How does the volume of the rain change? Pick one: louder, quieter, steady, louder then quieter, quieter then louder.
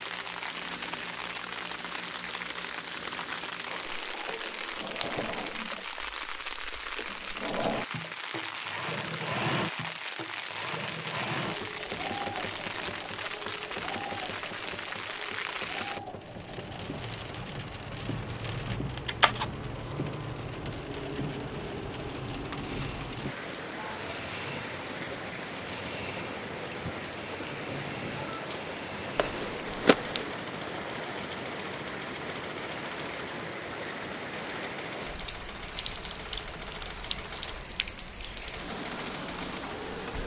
steady.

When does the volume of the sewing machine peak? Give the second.
9 s.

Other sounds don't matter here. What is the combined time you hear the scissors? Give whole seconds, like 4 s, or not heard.
3 s.